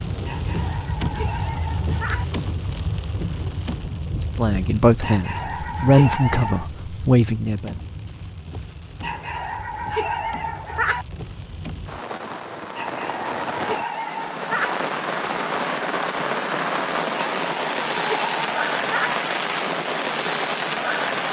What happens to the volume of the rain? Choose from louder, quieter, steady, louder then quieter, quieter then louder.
quieter then louder.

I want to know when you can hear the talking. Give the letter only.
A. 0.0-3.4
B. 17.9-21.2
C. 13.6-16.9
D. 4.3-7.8
D.